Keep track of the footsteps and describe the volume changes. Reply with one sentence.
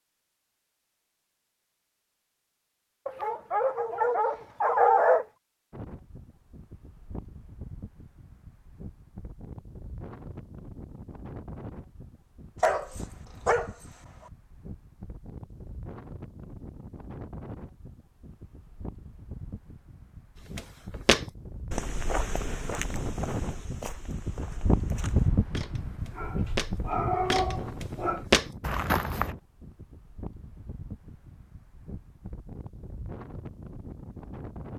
The loudness of the footsteps goes down, then up.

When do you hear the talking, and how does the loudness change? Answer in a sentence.
You can't hear the talking here.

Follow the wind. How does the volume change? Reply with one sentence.
The loudness of the wind goes up, then down.